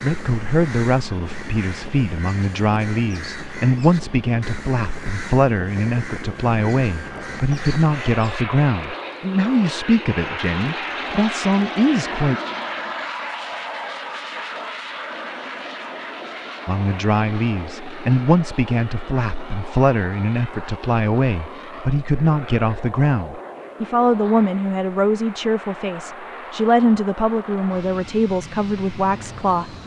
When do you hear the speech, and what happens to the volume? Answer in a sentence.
You can hear the speech from 0.0 to 12.4 s, at a steady volume; and from 16.6 to 29.8 s, at a steady volume.